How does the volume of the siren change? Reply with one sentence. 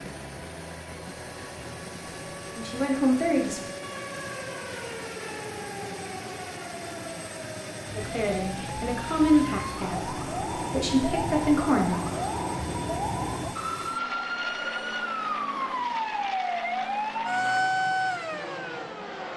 The loudness of the siren goes up.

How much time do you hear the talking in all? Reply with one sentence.
The talking can be heard for 5 seconds in total.